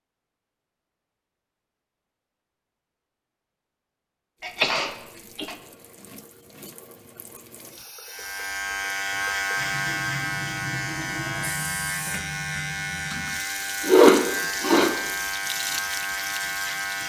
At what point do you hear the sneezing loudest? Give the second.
14 s.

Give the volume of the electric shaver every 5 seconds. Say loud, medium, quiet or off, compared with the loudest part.
off, loud, loud, loud.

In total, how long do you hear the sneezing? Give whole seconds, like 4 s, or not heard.
2 s.